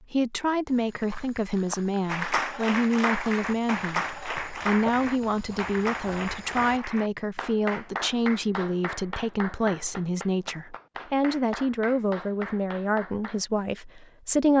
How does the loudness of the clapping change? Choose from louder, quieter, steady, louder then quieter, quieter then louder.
quieter.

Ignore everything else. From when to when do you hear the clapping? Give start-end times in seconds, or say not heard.
2.0-13.4.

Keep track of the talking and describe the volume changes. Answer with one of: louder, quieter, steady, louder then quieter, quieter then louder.
steady.